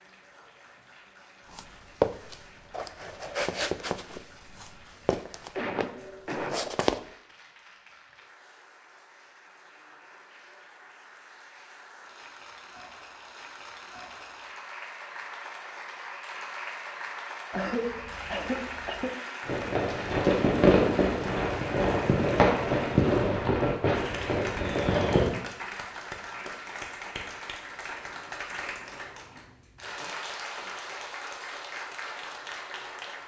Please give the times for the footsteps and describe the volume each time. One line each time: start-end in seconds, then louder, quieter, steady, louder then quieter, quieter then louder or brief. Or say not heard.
1.5-7.0 quieter.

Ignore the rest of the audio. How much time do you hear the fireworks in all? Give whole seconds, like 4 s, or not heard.
6 s.